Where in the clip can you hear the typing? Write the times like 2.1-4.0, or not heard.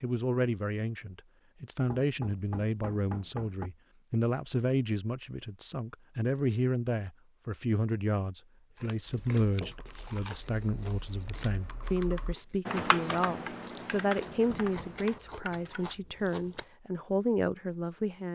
9.1-15.9.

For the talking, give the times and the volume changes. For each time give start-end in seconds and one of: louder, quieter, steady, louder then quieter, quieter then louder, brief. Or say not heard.
0.0-18.3 steady.